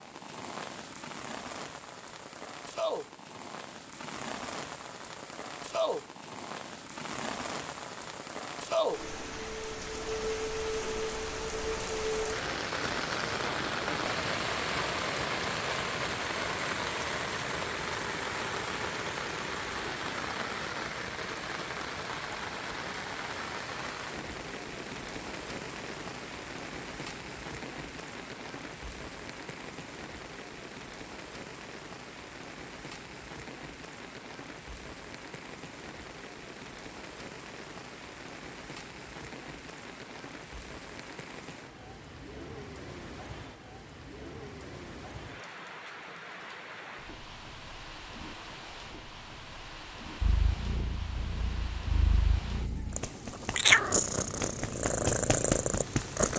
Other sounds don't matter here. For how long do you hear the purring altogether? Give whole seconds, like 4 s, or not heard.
6 s.